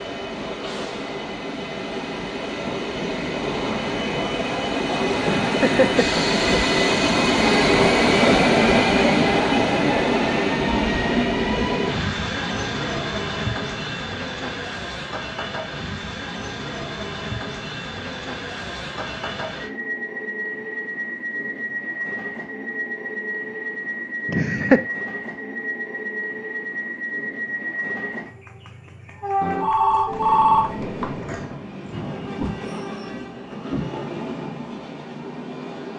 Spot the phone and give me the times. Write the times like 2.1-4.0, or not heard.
29.4-31.1.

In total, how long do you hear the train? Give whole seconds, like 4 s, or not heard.
36 s.